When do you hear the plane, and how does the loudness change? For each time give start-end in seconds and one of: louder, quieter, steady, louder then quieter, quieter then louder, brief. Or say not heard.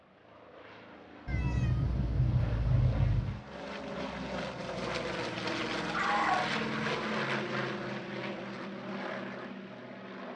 0.0-10.3 louder then quieter.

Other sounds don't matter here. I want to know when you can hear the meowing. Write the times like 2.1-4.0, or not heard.
1.2-3.5, 5.8-6.6.